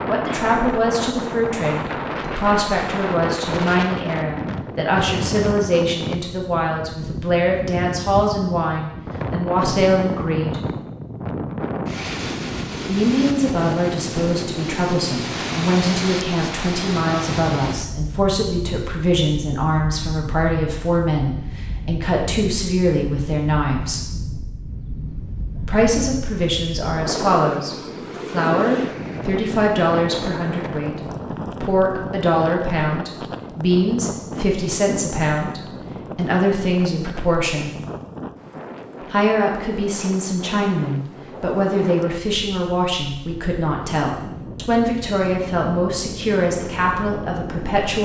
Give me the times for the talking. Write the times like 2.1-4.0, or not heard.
0.1-10.6, 12.8-24.1, 25.6-37.8, 39.0-48.0.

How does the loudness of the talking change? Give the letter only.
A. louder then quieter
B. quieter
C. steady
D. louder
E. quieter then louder
C.